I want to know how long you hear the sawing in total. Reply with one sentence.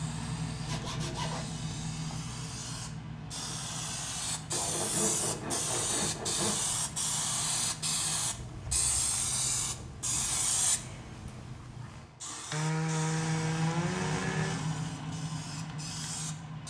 The sawing can be heard for 8 seconds in total.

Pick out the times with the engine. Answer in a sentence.
You can hear the engine from 0.0 to 8.3 s and from 12.9 to 16.6 s.